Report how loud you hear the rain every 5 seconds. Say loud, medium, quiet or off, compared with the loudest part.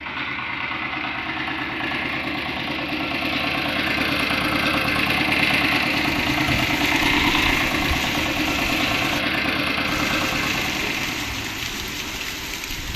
off, loud, loud.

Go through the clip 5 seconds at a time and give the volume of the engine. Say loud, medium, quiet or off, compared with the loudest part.
loud, loud, medium.